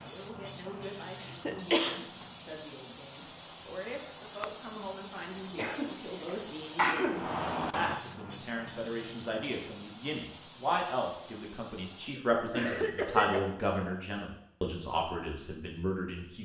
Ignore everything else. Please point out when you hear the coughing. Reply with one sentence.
You can hear the coughing from 1.2 to 2.0 s, from 5.5 to 7.3 s and from 12.2 to 13.4 s.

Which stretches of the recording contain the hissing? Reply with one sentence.
You can hear the hissing from 0.0 to 12.2 s.